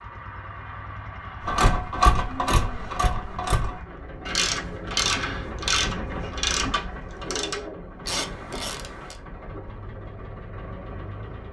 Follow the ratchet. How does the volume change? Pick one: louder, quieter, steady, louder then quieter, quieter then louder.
quieter.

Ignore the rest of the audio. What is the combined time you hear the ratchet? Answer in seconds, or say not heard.
8 s.